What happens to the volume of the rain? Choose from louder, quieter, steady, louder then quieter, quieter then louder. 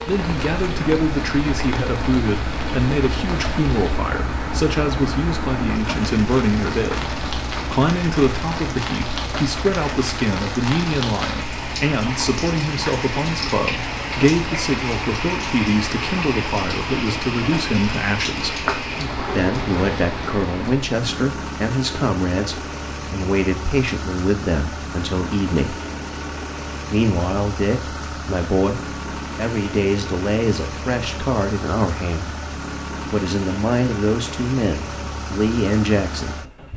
louder.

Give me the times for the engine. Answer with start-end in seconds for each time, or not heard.
0.0-36.7.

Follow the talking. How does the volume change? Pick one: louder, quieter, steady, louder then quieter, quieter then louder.
steady.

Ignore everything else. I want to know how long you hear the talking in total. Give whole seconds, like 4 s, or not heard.
34 s.